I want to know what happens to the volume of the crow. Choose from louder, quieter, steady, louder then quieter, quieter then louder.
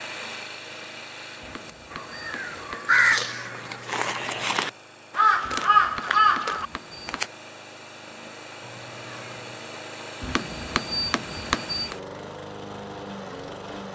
quieter then louder.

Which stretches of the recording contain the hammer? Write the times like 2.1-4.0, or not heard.
1.4-3.1, 5.4-7.2, 10.2-11.9.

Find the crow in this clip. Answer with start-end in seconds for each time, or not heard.
1.9-7.2.